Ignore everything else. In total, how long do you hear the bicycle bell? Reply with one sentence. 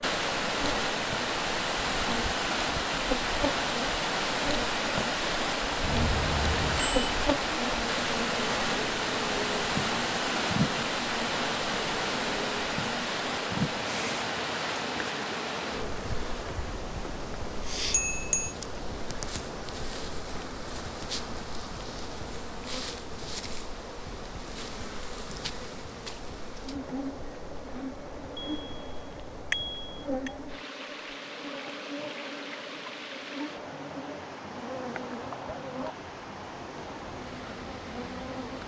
You can hear the bicycle bell for 4 seconds altogether.